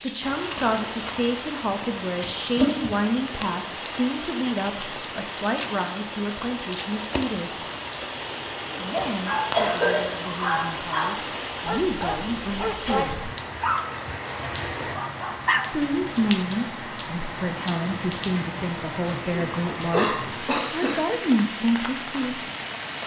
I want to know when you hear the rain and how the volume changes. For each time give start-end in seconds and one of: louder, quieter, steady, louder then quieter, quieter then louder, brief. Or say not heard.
0.0-23.0 steady.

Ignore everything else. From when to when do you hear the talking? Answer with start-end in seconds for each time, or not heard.
0.0-7.6, 8.8-13.2, 15.7-22.4.